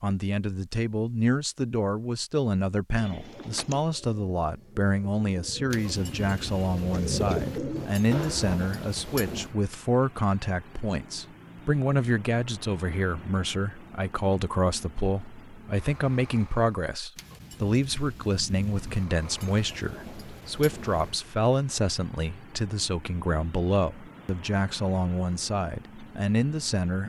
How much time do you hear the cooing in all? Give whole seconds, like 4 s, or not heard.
6 s.